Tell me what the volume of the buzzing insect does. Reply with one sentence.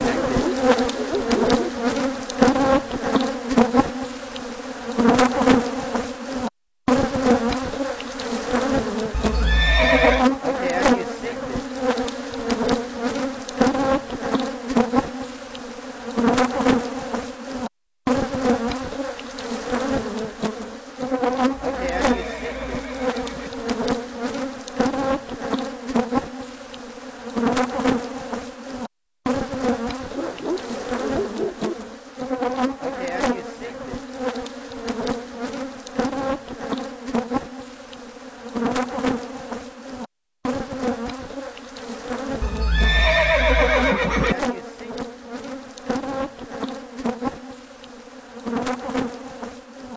The loudness of the buzzing insect goes down.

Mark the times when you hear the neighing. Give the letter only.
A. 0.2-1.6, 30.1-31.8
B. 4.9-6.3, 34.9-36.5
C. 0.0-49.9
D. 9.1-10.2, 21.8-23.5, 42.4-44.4
D.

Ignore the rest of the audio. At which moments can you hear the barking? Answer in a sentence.
You can hear the barking from 0.2 to 1.6 s and from 30.1 to 31.8 s.